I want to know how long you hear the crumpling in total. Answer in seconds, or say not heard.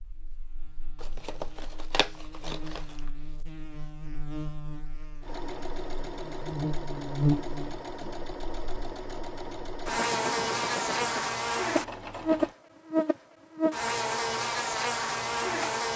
2 s.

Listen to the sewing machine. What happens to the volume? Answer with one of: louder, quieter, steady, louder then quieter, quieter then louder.
steady.